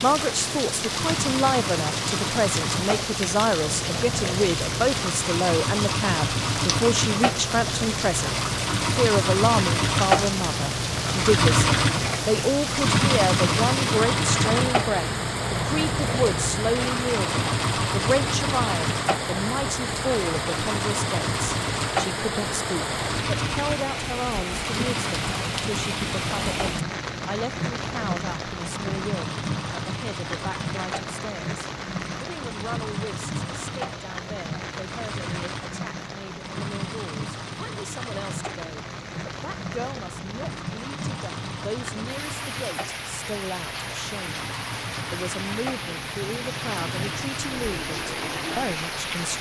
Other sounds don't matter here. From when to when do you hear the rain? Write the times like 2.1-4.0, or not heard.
0.0-49.3.